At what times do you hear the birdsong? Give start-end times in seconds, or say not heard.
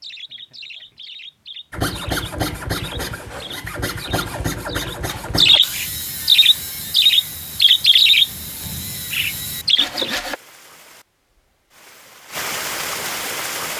0.0-10.2.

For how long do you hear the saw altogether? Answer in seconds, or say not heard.
9 s.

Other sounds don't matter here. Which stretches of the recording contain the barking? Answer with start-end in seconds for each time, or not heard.
not heard.